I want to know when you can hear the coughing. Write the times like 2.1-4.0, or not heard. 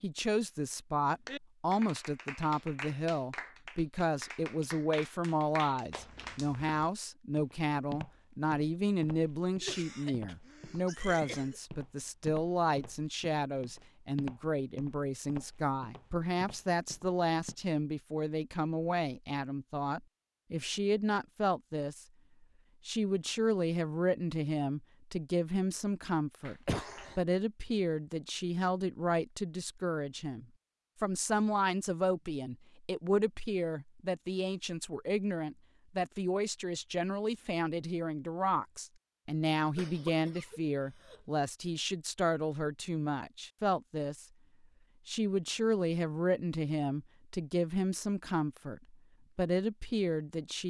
9.6-11.6, 26.4-27.2, 39.8-41.2.